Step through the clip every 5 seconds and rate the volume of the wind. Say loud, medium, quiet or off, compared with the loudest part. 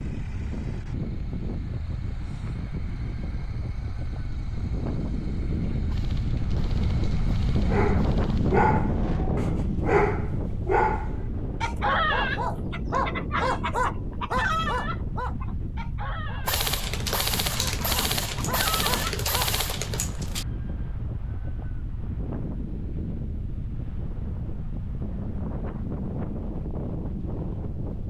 medium, loud, medium, medium, medium, medium.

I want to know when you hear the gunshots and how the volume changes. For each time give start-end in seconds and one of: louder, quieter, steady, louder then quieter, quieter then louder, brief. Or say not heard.
5.8-8.7 brief
16.4-20.4 steady.